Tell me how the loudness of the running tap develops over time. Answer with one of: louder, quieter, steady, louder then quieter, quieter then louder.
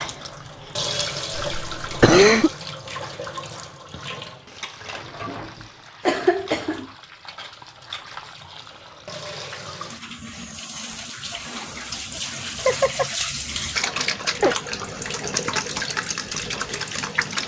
quieter then louder.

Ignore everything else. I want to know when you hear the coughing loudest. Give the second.
2 s.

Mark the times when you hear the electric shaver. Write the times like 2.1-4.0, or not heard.
not heard.